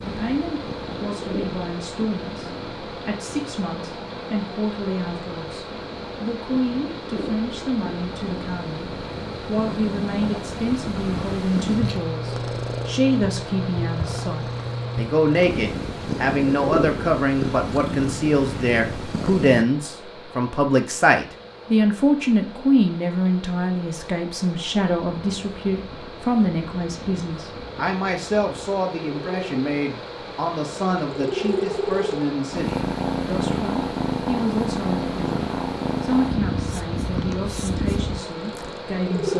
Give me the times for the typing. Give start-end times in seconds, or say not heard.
not heard.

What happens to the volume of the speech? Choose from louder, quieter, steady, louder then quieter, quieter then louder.
louder then quieter.